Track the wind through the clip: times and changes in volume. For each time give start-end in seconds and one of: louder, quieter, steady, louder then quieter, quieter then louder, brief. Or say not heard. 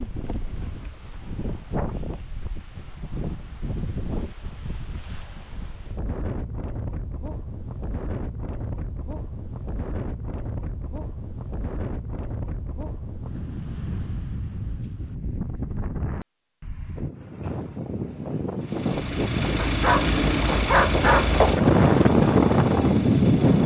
0.0-23.6 louder.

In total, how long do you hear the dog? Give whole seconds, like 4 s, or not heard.
2 s.